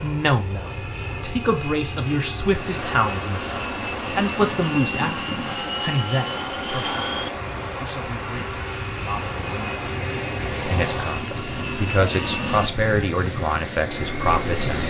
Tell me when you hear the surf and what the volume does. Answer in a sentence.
The surf can be heard from 2.3 to 14.8 s, at a steady volume.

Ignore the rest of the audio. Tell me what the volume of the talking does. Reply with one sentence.
The volume of the talking goes down, then up.